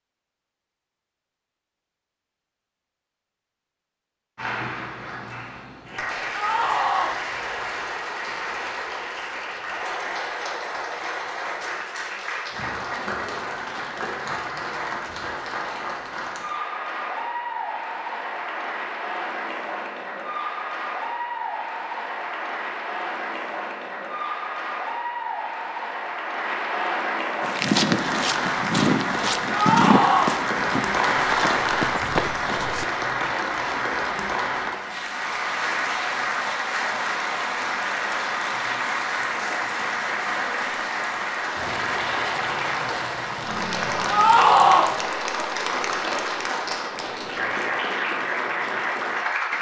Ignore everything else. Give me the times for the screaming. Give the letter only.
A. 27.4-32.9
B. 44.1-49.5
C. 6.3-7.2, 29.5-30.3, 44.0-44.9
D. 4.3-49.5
C.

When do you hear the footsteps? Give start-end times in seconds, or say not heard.
27.4-32.9.